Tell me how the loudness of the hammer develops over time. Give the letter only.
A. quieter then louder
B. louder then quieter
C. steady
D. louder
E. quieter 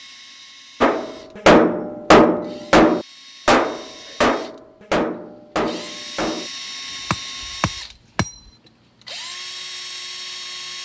E.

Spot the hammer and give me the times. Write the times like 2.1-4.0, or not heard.
0.8-8.5.